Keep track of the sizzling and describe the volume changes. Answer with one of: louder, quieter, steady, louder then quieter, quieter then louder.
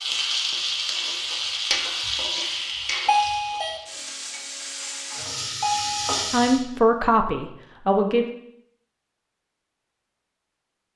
quieter then louder.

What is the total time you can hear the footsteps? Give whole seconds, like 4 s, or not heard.
not heard.